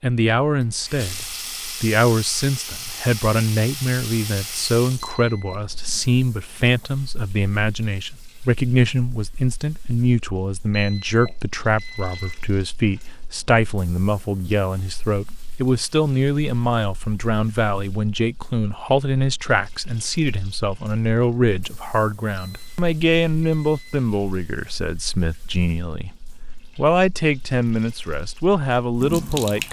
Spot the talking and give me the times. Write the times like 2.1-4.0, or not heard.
0.0-29.6.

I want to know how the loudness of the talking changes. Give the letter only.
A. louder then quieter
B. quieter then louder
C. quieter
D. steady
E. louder
D.